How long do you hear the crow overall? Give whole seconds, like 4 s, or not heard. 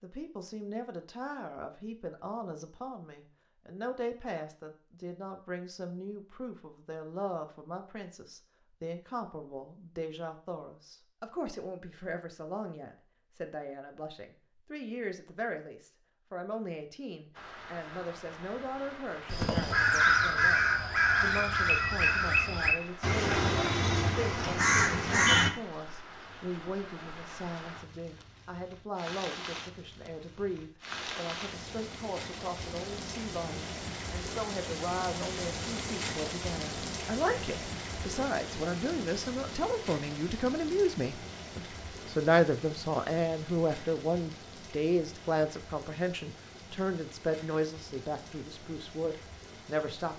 6 s.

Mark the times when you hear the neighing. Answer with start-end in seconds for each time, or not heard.
not heard.